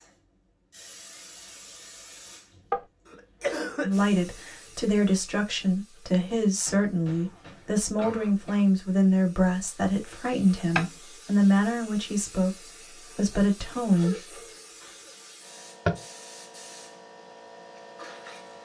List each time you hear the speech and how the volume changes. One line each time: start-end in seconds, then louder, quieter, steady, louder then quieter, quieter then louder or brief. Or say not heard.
3.8-14.4 steady.